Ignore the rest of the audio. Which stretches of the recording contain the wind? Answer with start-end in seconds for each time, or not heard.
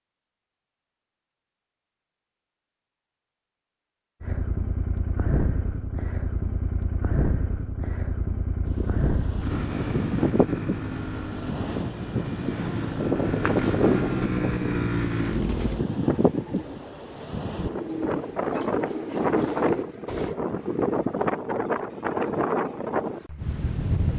8.7-24.1.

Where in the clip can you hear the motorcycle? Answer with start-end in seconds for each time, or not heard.
4.2-15.8.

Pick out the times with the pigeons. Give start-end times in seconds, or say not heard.
13.1-20.4.